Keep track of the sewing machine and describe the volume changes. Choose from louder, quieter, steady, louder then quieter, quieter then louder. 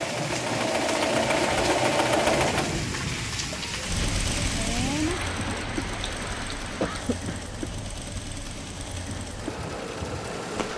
quieter.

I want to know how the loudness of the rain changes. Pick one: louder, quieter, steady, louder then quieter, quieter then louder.
quieter.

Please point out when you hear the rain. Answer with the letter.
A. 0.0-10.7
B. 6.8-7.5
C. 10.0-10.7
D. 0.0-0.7
A.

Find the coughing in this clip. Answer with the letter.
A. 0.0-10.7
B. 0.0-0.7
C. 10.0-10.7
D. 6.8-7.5
D.